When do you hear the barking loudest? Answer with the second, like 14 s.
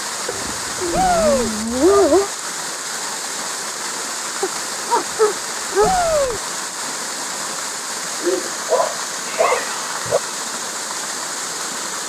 2 s.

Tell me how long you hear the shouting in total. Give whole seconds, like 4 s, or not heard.
2 s.